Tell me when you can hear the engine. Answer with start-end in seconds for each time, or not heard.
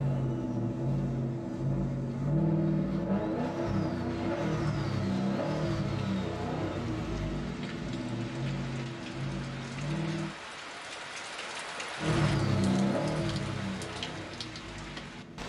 0.0-10.3, 12.0-15.4.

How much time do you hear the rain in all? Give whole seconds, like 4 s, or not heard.
11 s.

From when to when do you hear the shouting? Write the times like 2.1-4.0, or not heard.
not heard.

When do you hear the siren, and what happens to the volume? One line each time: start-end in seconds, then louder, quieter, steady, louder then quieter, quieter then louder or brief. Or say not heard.
not heard.